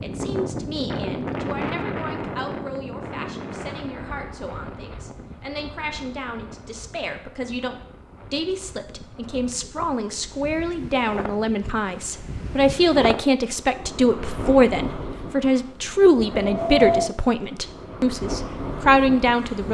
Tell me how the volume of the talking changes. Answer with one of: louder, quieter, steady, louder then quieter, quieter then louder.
louder.